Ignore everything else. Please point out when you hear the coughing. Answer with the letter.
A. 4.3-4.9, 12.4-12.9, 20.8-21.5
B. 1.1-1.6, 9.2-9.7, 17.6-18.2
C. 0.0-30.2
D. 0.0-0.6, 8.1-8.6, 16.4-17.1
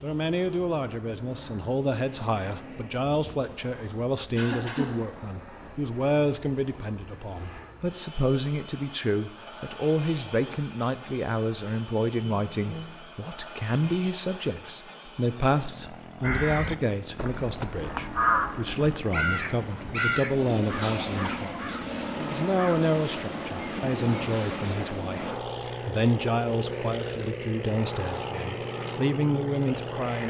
A.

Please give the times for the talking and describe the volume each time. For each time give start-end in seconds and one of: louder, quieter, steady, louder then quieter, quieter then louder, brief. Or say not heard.
0.0-30.2 steady.